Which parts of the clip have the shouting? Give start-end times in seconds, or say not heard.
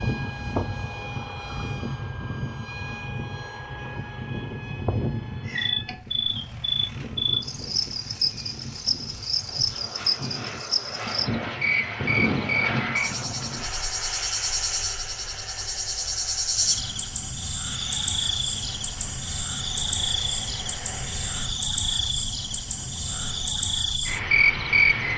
not heard.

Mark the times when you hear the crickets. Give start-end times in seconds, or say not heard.
5.5-25.1.